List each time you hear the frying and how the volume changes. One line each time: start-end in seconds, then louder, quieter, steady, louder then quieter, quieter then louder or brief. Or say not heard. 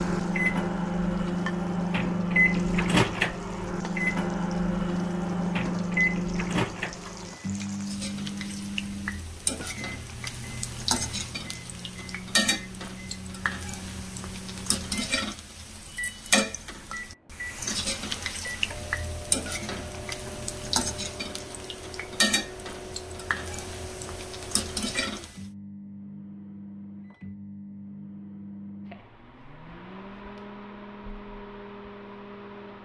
0.0-25.4 louder.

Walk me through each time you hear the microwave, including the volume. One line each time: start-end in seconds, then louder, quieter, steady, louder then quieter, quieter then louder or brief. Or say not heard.
0.0-32.8 quieter.